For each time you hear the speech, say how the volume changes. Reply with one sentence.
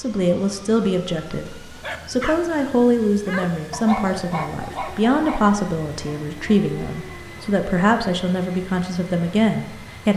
You can hear the speech from 0.0 to 10.1 s, at a steady volume.